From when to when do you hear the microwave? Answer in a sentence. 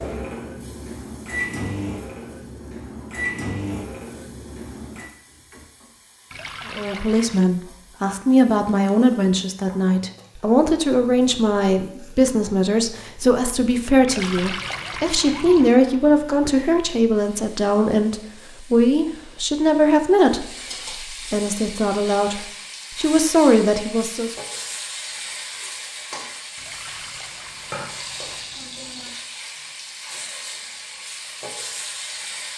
You can hear the microwave from 0.0 to 5.1 s.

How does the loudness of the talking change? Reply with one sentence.
The volume of the talking stays about the same.